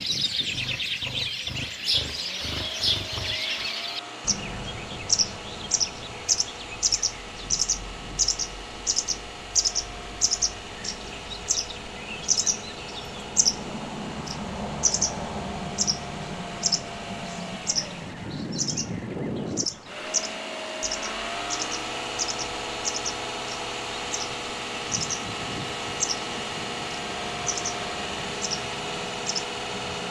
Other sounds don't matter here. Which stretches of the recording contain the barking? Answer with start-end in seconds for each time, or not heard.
not heard.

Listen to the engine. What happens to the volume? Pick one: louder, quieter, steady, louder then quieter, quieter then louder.
louder.